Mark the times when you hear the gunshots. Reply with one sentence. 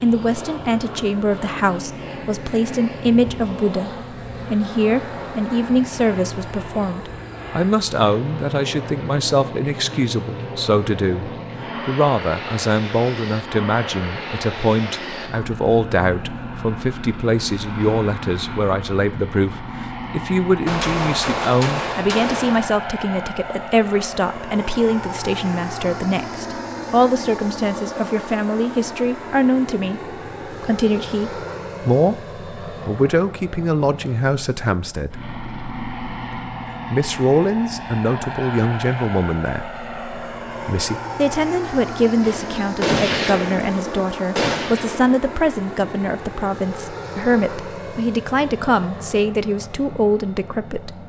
The gunshots can be heard from 20.6 to 22.6 s and from 42.2 to 45.2 s.